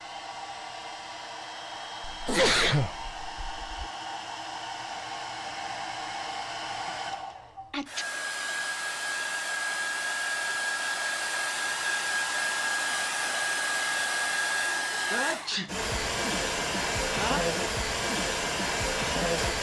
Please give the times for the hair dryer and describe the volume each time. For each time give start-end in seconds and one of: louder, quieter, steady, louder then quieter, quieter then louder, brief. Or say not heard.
0.0-19.5 louder.